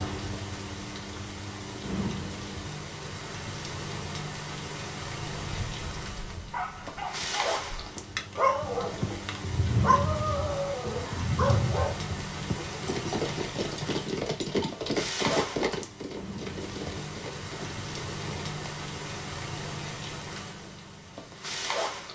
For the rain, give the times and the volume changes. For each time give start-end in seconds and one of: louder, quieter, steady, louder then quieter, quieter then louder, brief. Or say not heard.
0.0-22.1 steady.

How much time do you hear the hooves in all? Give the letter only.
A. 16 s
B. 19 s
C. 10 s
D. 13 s
C.